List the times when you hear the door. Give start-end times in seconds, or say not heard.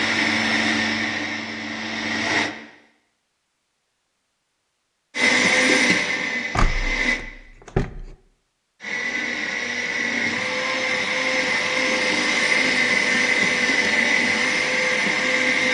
6.5-8.2.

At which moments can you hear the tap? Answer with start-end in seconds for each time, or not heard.
not heard.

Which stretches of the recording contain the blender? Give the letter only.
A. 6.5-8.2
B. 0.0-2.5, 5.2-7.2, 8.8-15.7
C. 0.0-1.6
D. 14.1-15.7
B.